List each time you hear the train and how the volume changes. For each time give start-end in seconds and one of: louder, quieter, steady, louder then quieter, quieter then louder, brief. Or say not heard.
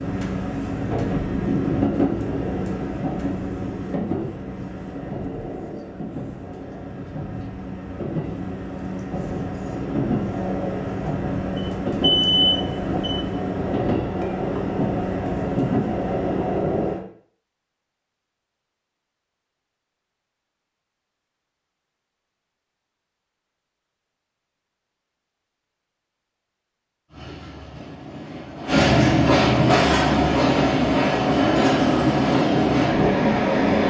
0.0-17.0 quieter then louder
27.1-33.8 louder.